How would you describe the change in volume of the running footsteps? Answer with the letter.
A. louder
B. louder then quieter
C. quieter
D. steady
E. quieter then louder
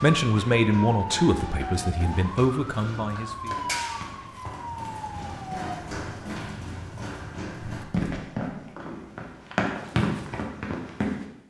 A.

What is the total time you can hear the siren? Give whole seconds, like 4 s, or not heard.
6 s.